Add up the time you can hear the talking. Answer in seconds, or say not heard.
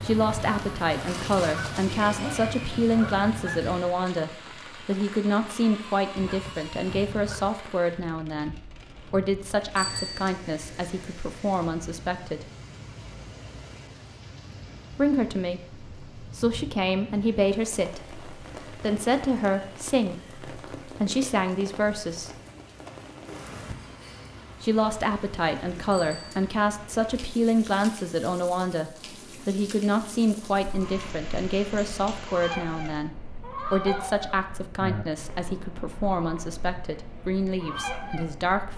34 s.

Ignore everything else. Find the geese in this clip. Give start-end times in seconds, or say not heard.
0.0-4.0, 30.4-38.7.